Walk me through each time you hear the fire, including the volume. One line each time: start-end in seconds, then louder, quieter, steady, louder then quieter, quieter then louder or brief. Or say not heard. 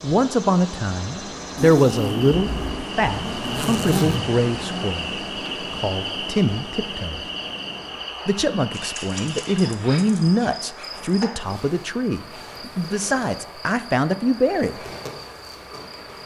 not heard.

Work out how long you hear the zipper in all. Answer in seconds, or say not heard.
3 s.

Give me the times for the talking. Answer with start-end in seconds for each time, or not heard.
0.0-7.2, 8.2-14.8.